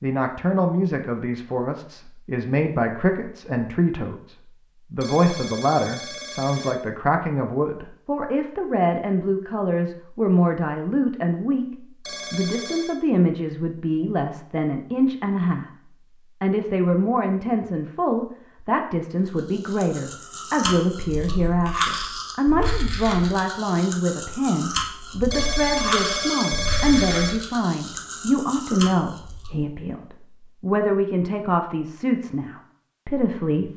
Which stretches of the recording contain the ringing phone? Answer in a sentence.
The ringing phone can be heard from 5.0 to 6.8 s, from 12.1 to 12.9 s and from 25.3 to 27.3 s.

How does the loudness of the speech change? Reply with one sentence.
The volume of the speech stays about the same.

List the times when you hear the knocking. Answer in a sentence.
You can't hear the knocking here.